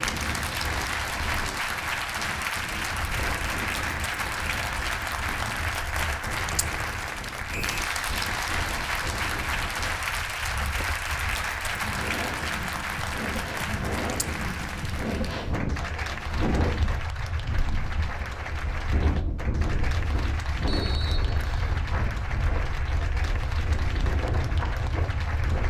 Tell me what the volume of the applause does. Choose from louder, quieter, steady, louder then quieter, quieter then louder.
quieter.